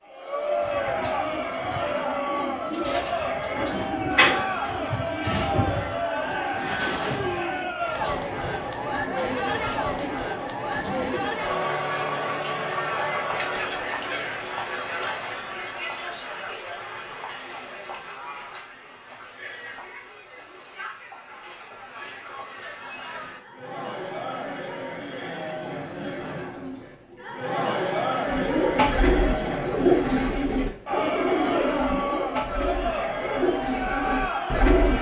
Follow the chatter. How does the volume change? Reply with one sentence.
The loudness of the chatter goes down, then up.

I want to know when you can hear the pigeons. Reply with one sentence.
The pigeons can be heard from 0.6 to 11.4 s and from 28.2 to 34.9 s.